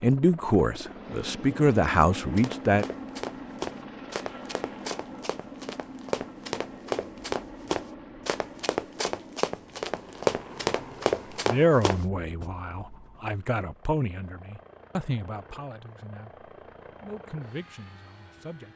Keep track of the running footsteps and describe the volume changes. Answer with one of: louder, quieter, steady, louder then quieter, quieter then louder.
louder.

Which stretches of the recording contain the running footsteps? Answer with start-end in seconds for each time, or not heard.
2.4-12.4.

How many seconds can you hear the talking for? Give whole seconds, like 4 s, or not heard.
10 s.